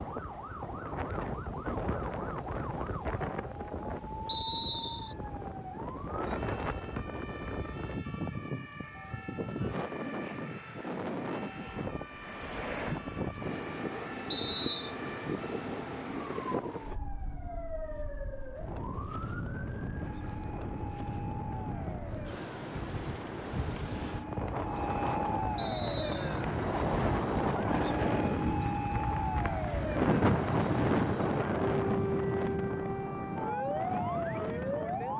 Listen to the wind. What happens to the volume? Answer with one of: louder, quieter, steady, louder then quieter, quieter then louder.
louder.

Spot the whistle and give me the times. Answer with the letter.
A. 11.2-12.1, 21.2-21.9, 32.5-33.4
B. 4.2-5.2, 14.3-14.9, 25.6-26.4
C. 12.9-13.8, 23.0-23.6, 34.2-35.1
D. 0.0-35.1
B.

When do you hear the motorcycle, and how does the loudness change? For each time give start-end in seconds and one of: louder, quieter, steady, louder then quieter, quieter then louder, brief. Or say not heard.
not heard.